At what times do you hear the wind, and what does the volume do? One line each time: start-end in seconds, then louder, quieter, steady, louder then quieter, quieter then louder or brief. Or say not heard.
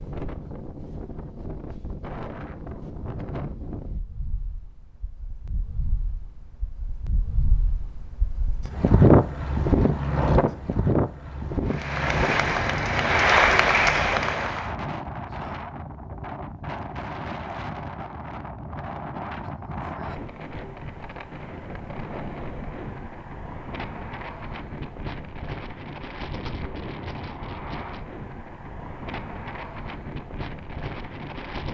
0.0-31.6 louder then quieter.